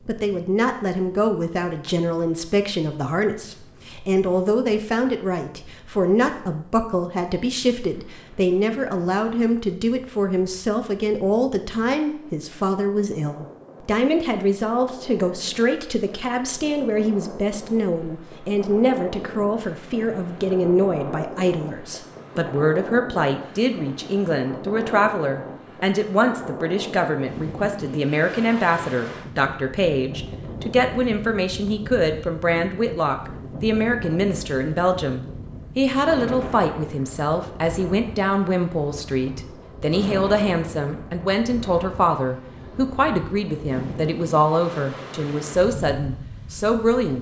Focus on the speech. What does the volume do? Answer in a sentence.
The volume of the speech stays about the same.